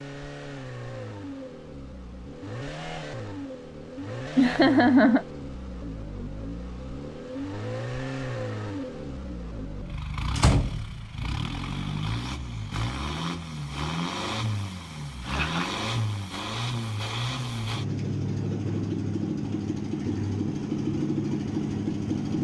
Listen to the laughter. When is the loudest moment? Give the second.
5 s.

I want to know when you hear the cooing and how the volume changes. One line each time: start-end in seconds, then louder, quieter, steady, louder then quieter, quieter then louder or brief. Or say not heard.
not heard.